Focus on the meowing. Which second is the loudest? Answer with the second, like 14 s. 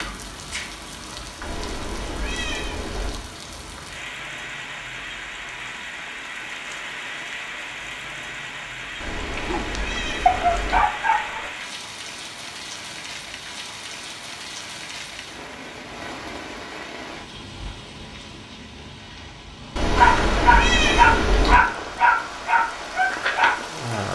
21 s.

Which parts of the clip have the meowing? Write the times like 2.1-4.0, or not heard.
1.4-3.2, 9.0-10.8, 19.8-21.6.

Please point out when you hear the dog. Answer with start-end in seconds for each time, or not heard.
9.3-11.5, 19.9-24.0.